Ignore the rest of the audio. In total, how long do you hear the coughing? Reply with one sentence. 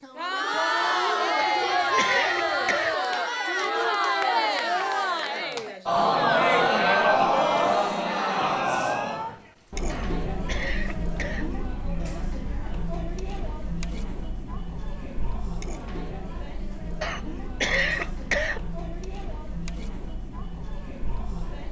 You can hear the coughing for 5 seconds altogether.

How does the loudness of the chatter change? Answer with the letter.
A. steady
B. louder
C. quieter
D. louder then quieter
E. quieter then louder
C.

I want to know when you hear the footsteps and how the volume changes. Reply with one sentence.
The footsteps can't be heard in this clip.